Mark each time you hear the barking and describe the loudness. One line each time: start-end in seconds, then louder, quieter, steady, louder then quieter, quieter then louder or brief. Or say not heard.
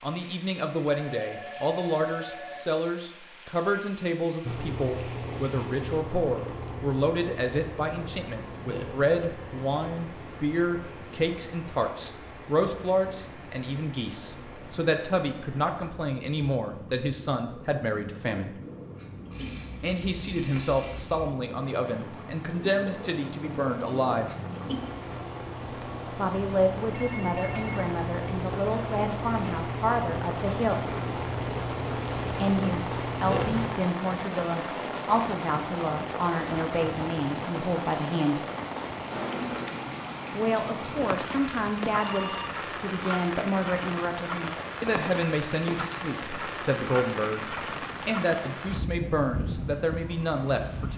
not heard.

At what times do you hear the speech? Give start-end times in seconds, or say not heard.
0.0-18.6, 19.8-24.3, 26.1-30.8, 32.4-38.4, 40.3-50.9.